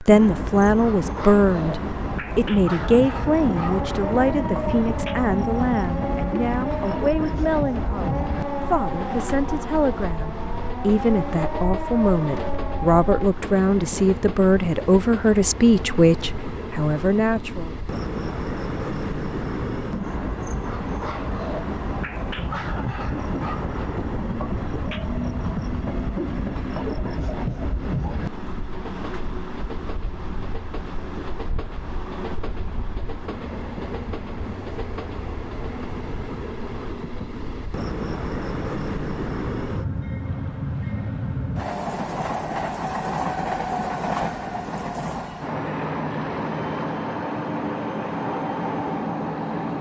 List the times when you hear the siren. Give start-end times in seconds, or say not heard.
2.9-13.3.